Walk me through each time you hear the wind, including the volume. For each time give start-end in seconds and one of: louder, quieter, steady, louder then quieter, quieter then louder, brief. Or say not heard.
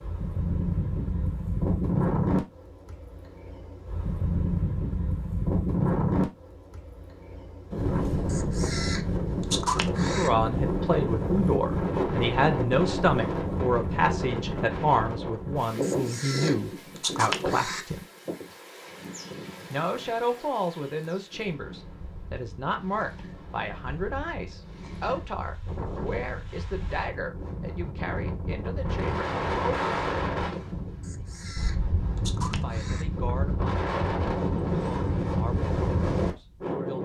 0.0-37.0 quieter then louder.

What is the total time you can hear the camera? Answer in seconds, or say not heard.
6 s.